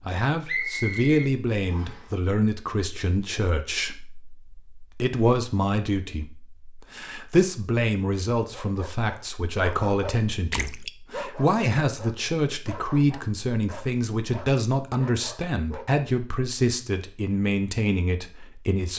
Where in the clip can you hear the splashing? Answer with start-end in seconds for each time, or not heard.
10.5-10.9.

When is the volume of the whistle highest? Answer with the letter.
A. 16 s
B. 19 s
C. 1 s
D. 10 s
C.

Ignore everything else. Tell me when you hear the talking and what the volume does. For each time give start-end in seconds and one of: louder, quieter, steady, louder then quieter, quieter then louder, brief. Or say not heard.
0.0-18.9 steady.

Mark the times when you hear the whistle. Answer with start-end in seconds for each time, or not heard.
0.5-2.0.